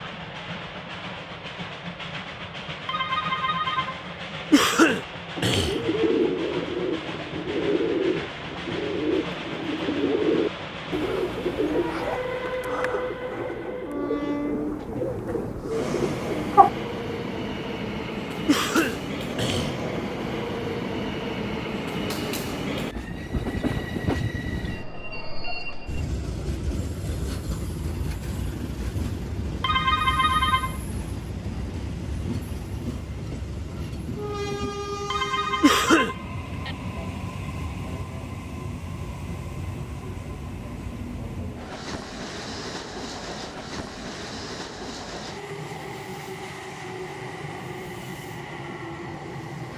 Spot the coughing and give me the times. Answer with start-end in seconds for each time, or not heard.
4.5-5.9, 18.4-19.9, 35.6-36.1.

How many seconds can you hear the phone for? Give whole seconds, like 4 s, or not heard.
4 s.